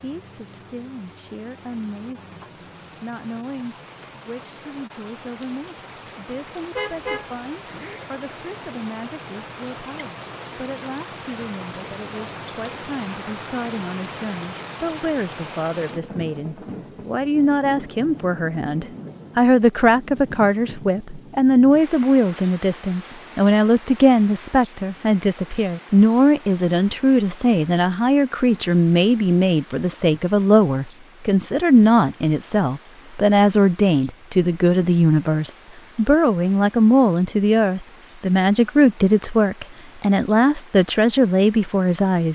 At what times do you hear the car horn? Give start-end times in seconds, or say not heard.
6.8-8.1.